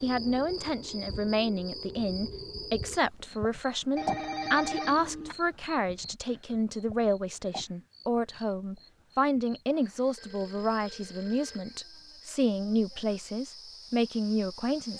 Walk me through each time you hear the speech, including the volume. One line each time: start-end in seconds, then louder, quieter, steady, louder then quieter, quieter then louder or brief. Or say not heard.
0.0-14.9 steady.